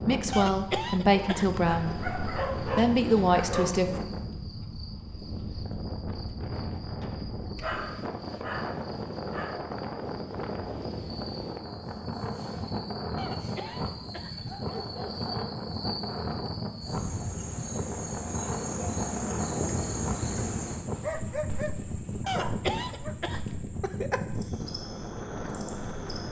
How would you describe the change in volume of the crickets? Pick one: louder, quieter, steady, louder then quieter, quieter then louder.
louder then quieter.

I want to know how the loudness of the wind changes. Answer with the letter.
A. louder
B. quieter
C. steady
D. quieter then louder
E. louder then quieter
C.